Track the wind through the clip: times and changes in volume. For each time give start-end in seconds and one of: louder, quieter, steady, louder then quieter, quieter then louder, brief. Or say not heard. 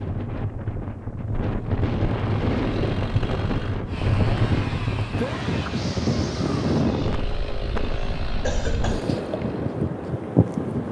0.0-10.8 steady.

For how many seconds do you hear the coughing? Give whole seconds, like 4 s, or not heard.
2 s.